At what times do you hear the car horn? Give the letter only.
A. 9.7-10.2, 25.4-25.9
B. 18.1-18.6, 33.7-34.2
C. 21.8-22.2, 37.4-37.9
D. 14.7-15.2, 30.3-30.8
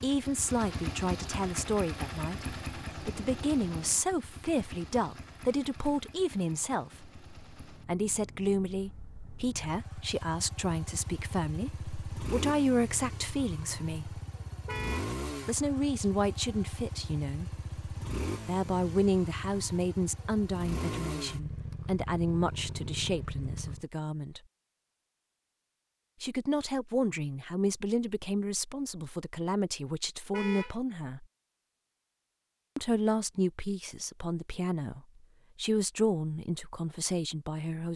D.